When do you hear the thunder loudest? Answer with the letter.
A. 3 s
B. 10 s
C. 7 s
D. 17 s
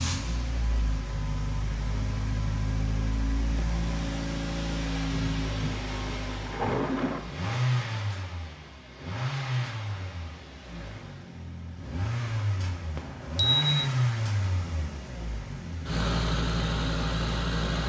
C.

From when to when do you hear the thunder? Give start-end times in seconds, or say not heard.
5.1-7.2.